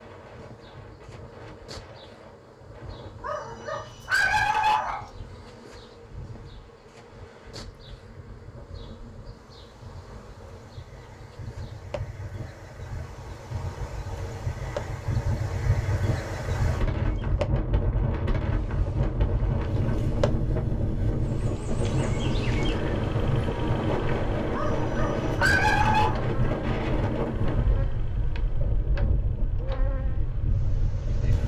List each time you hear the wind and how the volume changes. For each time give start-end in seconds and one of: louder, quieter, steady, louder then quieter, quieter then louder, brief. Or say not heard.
0.0-31.4 louder.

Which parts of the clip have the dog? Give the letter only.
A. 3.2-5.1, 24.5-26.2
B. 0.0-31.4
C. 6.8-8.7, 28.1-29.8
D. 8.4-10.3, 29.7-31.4
A.